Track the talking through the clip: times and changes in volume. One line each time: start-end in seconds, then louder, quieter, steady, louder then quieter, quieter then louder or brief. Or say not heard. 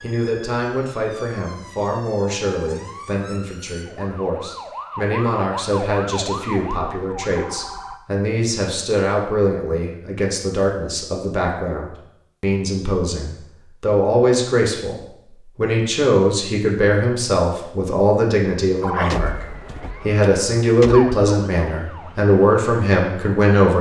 0.0-23.7 louder.